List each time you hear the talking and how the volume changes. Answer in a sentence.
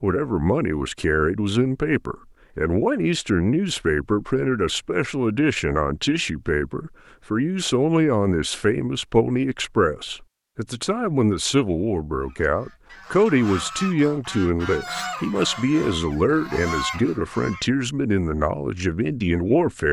You can hear the talking from 0.0 to 19.8 s, at a steady volume.